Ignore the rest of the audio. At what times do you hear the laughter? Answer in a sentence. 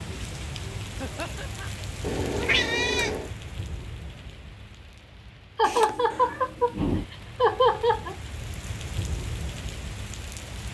The laughter can be heard from 1.0 to 1.7 s and from 5.5 to 8.2 s.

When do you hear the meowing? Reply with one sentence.
You can hear the meowing from 2.0 to 3.3 s and from 5.6 to 7.0 s.